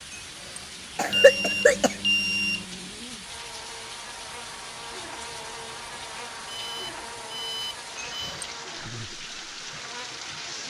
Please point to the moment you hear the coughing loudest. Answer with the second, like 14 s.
1 s.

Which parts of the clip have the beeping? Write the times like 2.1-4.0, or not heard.
1.1-2.6, 6.5-8.3.